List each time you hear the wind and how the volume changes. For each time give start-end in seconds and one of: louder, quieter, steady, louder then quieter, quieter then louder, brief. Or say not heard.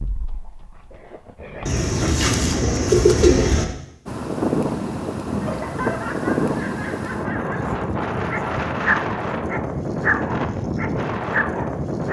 4.0-12.0 steady.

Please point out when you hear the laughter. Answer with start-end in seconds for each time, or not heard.
5.4-7.8.